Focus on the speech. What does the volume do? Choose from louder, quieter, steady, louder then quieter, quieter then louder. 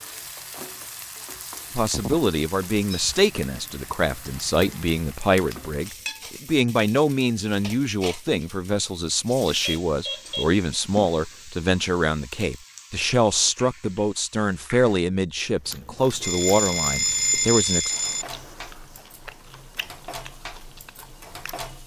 steady.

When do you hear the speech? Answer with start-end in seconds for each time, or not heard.
1.8-17.9.